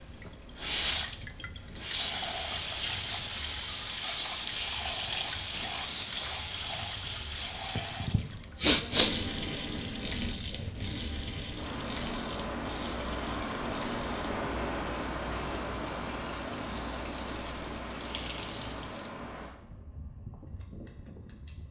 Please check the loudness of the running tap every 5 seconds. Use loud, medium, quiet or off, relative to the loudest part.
loud, loud, medium, quiet, off.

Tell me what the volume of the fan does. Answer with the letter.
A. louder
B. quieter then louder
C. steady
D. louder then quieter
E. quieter
D.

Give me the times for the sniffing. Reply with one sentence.
The sniffing can be heard from 7.8 to 9.1 s.